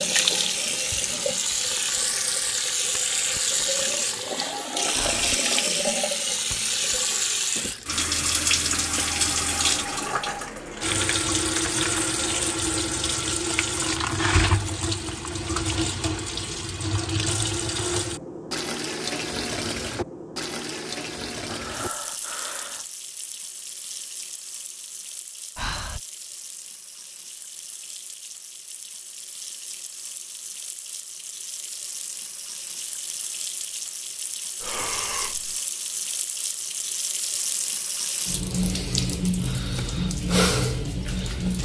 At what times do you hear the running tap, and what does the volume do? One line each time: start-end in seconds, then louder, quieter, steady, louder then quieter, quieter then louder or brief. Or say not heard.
0.0-41.6 quieter then louder.